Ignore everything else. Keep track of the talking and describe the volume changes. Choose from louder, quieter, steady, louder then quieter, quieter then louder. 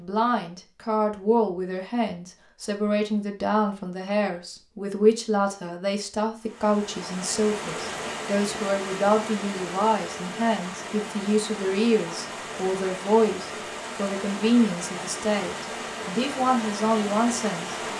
steady.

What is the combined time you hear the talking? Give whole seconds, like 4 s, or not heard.
18 s.